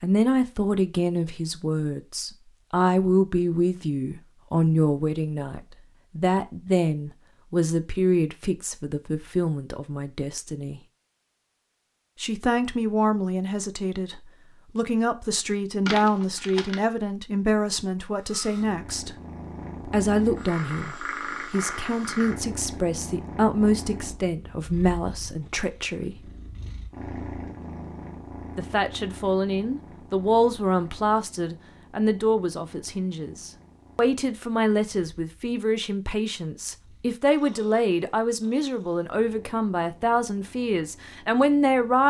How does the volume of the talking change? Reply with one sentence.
The volume of the talking stays about the same.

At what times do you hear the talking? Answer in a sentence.
The talking can be heard from 0.0 to 10.8 s, from 12.2 to 19.1 s, from 19.9 to 26.3 s and from 28.6 to 42.0 s.